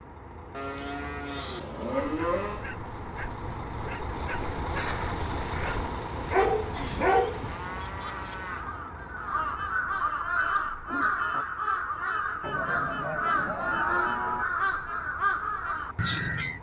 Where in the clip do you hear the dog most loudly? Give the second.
7 s.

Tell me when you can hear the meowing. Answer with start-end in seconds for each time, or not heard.
not heard.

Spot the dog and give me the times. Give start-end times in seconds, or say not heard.
2.0-7.7.